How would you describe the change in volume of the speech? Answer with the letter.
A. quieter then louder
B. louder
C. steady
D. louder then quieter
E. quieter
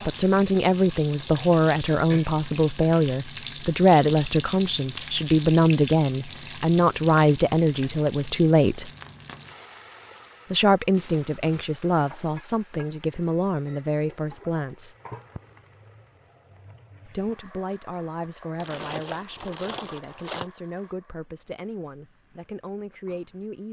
E.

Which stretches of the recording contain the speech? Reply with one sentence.
The speech can be heard from 0.1 to 8.9 s, from 10.5 to 14.9 s and from 17.1 to 23.6 s.